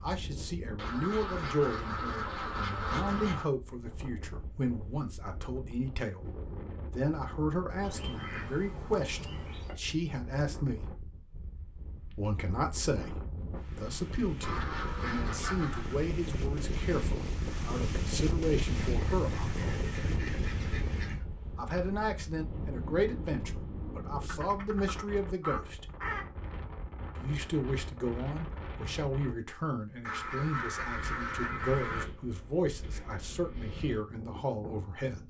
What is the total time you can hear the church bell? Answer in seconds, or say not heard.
not heard.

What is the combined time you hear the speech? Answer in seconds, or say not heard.
30 s.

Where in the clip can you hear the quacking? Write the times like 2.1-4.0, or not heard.
0.8-3.5, 7.8-9.8, 14.4-15.9, 18.8-21.2, 24.2-26.2, 30.0-32.0.